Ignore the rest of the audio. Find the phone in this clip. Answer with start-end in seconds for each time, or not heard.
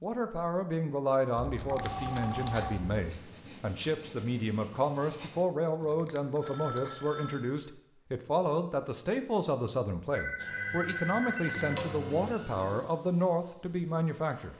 1.4-3.1, 5.8-7.6, 10.1-11.8.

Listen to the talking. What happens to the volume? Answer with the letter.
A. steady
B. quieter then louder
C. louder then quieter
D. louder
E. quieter
A.